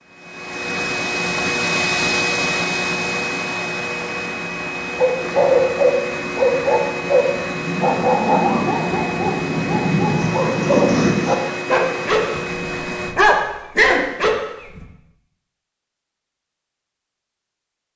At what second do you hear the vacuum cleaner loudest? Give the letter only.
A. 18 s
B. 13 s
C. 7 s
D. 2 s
D.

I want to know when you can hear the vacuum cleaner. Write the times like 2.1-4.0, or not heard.
0.1-13.2.